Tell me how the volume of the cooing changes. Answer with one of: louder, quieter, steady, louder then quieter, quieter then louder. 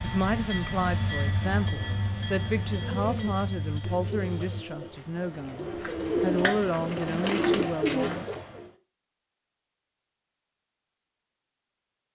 louder.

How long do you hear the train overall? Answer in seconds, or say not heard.
5 s.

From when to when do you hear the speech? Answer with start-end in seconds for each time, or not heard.
0.0-8.2.